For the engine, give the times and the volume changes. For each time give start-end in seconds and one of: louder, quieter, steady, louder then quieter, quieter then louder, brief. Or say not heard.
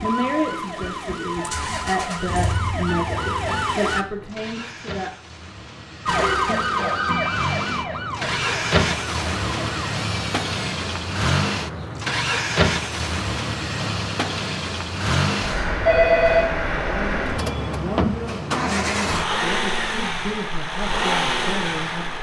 0.0-22.1 louder.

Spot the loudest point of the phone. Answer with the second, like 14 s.
16 s.